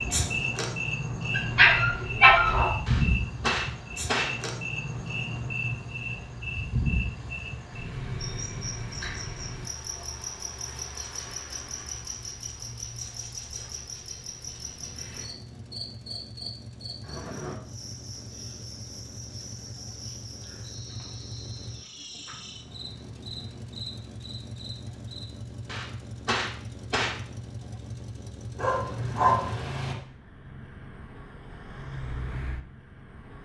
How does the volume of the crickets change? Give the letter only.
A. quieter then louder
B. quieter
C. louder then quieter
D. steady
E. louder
B.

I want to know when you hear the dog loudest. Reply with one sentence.
The volume of the dog peaks at 2 seconds.